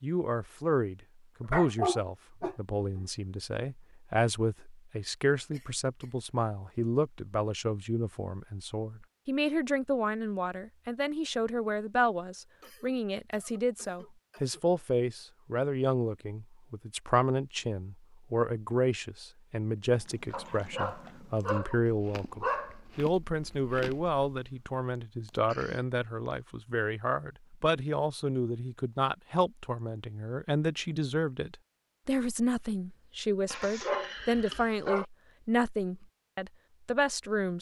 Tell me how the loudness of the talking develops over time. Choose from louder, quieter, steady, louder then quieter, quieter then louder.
steady.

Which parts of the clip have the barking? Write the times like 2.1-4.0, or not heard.
1.5-3.0, 20.3-22.8, 33.5-35.0.